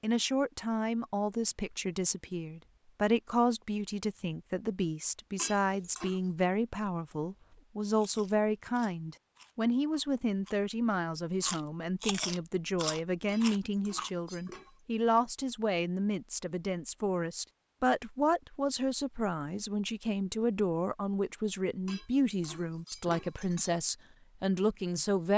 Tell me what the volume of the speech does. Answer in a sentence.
The loudness of the speech stays about the same.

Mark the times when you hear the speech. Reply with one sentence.
You can hear the speech from 0.0 to 25.3 s.